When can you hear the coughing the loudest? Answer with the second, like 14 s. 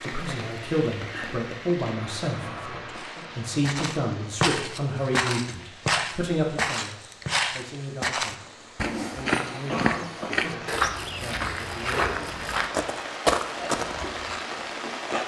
10 s.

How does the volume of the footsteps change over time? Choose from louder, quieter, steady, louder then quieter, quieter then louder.
steady.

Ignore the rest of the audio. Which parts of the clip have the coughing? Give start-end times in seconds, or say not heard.
2.4-4.0, 9.7-10.7.